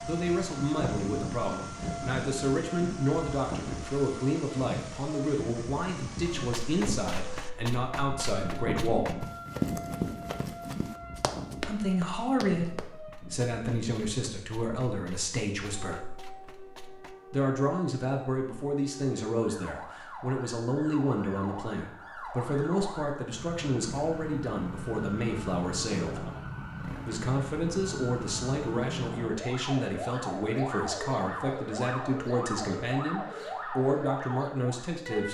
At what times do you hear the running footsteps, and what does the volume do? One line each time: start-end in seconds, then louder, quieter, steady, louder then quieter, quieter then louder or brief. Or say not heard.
6.3-17.1 louder then quieter.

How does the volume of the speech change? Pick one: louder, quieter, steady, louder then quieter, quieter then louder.
steady.